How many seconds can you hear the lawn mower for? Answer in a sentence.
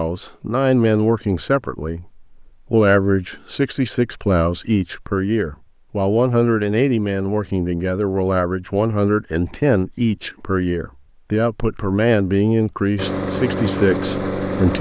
You can hear the lawn mower for 2 seconds altogether.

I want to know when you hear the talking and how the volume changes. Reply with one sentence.
You can hear the talking from 0.0 to 14.7 s, at a steady volume.